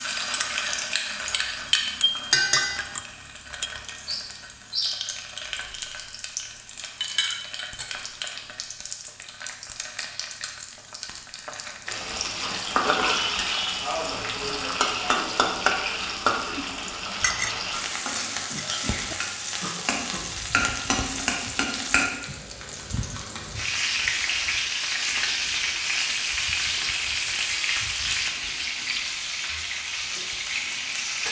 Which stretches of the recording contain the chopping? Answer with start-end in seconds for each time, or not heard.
not heard.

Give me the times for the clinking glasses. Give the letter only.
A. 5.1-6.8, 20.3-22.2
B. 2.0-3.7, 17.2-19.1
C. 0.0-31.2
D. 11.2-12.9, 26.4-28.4
B.